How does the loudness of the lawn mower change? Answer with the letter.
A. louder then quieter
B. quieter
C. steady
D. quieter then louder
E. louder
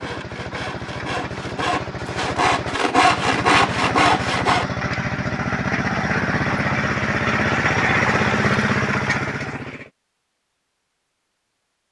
E.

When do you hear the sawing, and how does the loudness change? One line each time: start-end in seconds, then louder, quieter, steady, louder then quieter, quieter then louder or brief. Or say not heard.
0.0-4.7 louder.